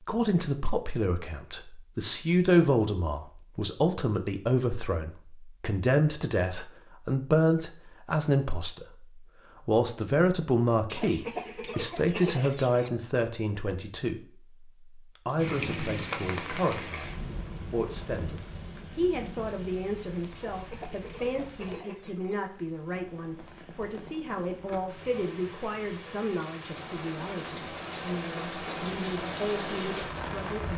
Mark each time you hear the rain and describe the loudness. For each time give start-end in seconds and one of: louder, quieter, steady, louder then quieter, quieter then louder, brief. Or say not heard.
15.3-30.7 quieter then louder.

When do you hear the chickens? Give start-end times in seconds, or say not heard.
10.9-12.9, 20.4-22.4.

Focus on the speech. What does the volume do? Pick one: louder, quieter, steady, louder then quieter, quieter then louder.
quieter.